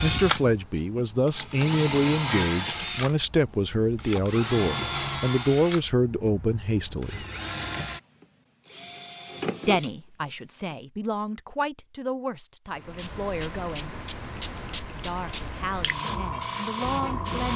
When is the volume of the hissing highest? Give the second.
17 s.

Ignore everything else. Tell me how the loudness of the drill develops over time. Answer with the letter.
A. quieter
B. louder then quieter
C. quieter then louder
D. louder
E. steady
A.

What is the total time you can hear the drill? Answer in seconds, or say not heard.
11 s.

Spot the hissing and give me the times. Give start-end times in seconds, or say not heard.
12.7-17.5.